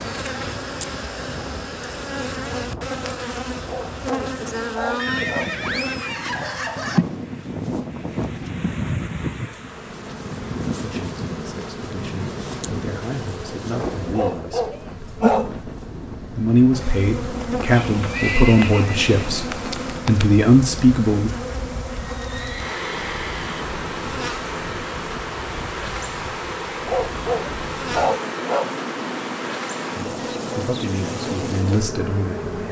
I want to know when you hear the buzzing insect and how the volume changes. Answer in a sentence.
You can hear the buzzing insect from 0.0 to 32.6 s, at a steady volume.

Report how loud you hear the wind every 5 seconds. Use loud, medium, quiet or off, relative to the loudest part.
medium, loud, loud, medium, medium, medium, loud.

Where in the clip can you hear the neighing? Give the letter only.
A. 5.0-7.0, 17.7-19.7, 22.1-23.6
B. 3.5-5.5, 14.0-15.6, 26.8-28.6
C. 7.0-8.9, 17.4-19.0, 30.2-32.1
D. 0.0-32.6
A.